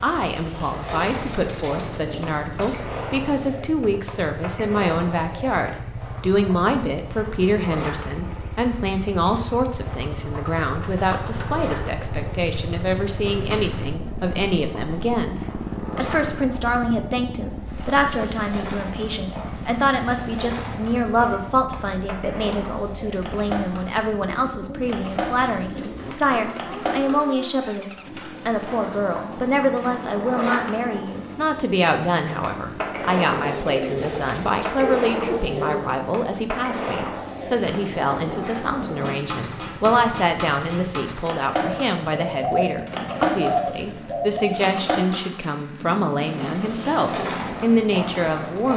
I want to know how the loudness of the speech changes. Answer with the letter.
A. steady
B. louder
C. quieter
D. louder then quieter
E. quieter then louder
A.